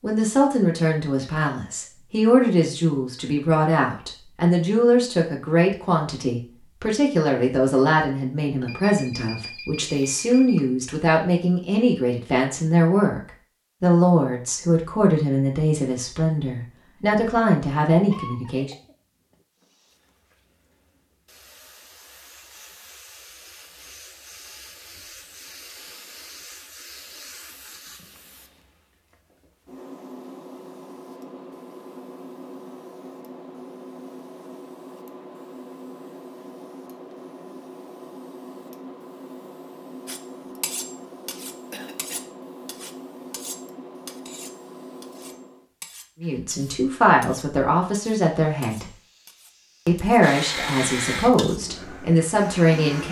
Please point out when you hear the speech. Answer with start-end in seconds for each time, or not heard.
0.0-18.7, 46.2-48.9, 49.9-53.0.